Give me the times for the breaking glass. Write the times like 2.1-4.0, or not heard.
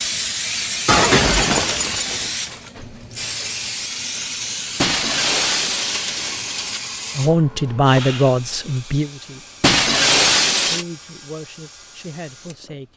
0.8-2.6, 4.8-6.8, 9.6-10.8.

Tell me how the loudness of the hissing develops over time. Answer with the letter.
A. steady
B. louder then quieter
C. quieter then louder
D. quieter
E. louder
D.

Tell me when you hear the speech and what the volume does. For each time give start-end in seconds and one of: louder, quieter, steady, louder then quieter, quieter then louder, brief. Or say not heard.
7.2-12.9 quieter.